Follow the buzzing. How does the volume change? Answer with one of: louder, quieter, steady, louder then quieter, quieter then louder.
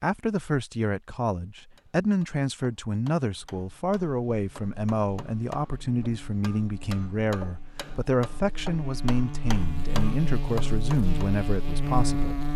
louder.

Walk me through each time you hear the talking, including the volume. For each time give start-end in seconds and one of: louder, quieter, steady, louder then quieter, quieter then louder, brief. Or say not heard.
0.0-12.4 steady.